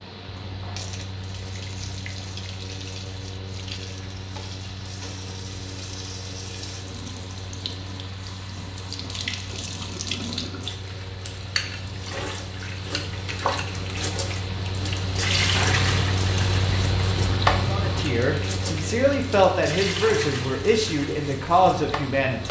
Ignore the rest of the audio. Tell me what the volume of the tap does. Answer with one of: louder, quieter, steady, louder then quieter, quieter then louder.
louder then quieter.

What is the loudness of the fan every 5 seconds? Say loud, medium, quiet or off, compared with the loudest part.
medium, medium, medium, loud, medium.